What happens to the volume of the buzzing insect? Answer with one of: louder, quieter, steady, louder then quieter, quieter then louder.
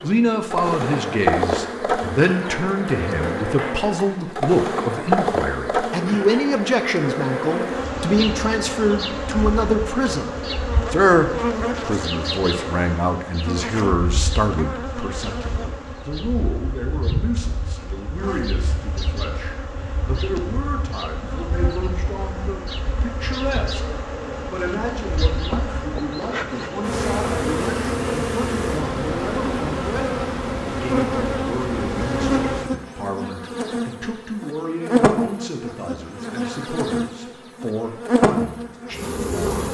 quieter then louder.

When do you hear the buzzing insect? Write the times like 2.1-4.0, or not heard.
0.0-39.6.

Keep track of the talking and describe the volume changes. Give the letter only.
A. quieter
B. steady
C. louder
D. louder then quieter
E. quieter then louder
A.